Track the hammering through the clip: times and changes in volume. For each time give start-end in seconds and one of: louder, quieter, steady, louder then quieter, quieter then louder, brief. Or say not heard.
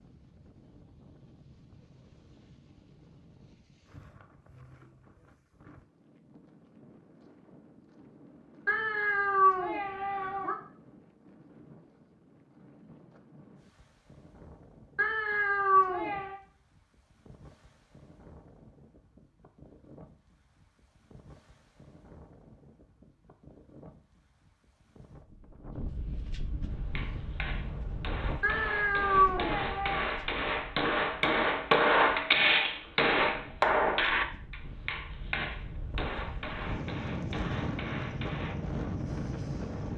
26.9-38.5 louder then quieter.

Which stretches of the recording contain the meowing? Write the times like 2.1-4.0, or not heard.
8.7-10.6, 14.9-16.4, 28.4-30.1.